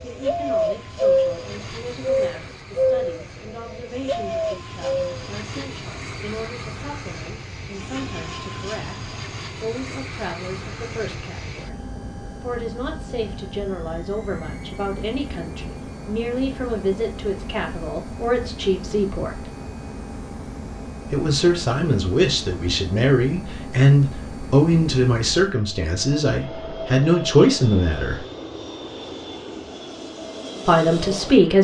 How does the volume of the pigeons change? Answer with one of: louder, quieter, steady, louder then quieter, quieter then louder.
quieter then louder.